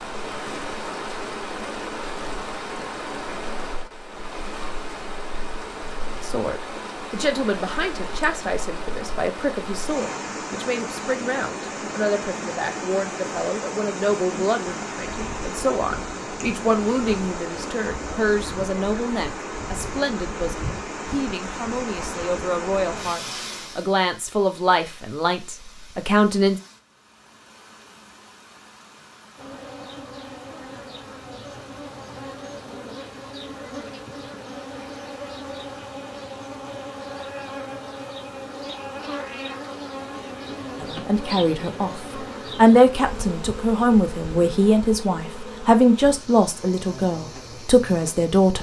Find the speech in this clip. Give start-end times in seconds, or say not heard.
6.2-26.6, 40.8-42.0, 42.5-48.5.